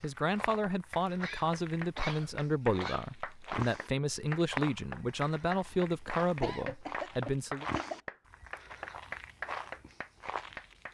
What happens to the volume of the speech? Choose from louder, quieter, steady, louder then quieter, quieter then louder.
steady.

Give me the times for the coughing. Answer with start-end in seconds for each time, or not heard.
1.2-3.1, 6.4-8.0.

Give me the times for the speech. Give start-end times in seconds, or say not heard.
0.0-7.7.